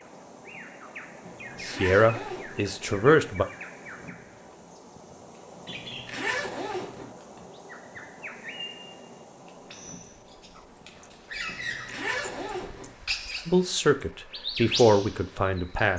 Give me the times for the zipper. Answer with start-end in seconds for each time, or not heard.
1.2-2.7, 5.7-7.2, 11.4-12.9.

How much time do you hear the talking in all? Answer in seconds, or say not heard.
4 s.